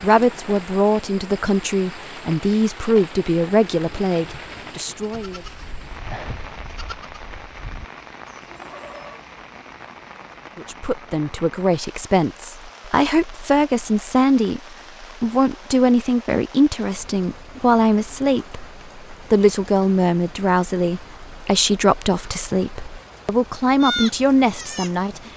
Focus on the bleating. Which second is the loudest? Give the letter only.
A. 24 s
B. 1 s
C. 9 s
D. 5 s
A.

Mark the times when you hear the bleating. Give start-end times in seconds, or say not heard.
4.2-9.3, 23.8-25.3.